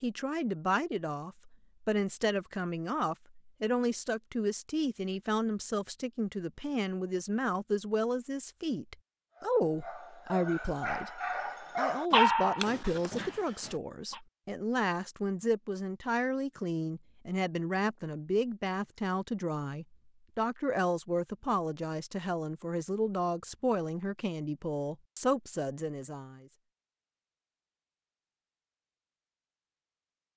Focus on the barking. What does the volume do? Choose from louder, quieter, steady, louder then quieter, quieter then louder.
louder then quieter.